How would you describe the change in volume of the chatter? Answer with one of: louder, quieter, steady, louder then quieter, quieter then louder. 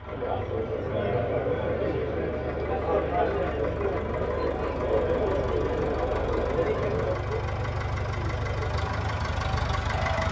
quieter.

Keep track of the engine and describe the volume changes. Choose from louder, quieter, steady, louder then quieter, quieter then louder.
louder.